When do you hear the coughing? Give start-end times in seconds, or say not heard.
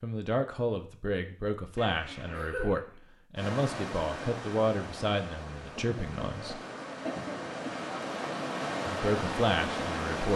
1.8-3.0, 5.8-7.8.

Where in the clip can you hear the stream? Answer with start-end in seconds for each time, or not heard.
3.4-10.3.